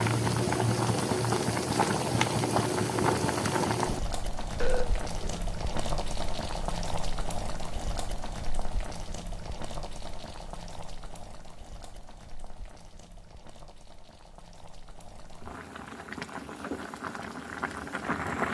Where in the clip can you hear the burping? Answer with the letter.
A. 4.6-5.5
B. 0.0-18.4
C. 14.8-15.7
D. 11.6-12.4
A.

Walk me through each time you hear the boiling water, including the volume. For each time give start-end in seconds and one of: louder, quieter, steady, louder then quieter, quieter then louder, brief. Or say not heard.
0.0-18.4 quieter then louder.